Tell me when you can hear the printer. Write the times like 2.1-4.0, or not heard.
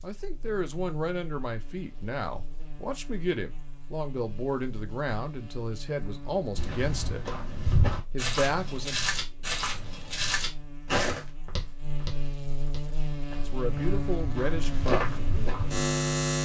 not heard.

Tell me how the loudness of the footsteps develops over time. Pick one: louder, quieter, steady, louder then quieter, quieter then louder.
quieter then louder.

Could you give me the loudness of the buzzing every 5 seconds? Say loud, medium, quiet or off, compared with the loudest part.
quiet, quiet, medium, loud.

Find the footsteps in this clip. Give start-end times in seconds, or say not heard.
6.5-15.8.